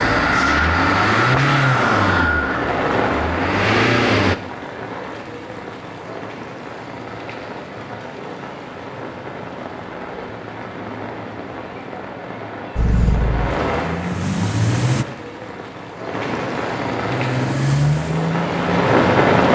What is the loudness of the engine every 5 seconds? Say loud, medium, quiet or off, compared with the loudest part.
loud, off, medium, loud.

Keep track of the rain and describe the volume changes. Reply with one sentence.
The loudness of the rain goes down, then up.